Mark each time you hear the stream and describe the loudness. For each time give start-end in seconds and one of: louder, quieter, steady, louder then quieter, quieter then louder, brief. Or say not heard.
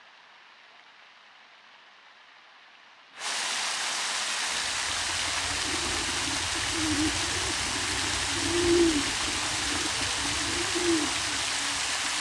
0.0-12.1 louder.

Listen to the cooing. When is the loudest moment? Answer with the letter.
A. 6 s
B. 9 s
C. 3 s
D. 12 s
B.